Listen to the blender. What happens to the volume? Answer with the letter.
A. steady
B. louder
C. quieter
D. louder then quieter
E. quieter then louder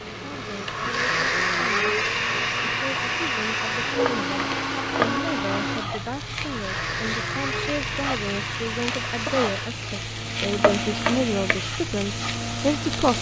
C.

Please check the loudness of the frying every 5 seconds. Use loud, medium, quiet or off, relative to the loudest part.
medium, loud, loud.